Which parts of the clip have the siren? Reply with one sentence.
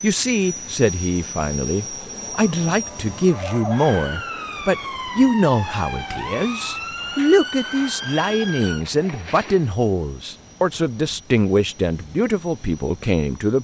The siren can be heard from 2.2 to 8.8 s.